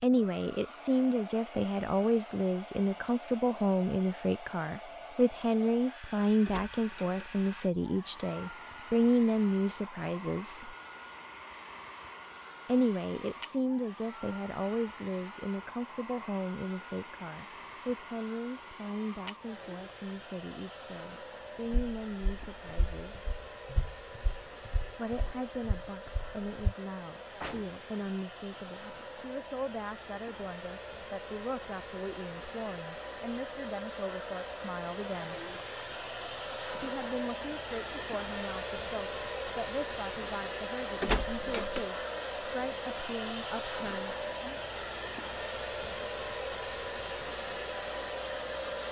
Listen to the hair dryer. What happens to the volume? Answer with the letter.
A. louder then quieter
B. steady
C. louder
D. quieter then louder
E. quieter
C.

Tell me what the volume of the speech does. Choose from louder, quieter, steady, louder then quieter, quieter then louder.
quieter.